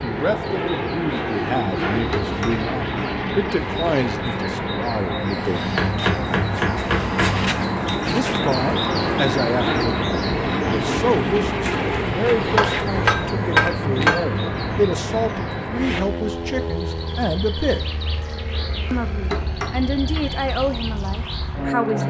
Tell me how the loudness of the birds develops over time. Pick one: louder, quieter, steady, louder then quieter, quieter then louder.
louder then quieter.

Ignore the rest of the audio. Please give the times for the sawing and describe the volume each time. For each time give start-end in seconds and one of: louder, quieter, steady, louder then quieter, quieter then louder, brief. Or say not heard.
not heard.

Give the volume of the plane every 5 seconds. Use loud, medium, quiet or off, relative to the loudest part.
loud, loud, loud, medium, loud.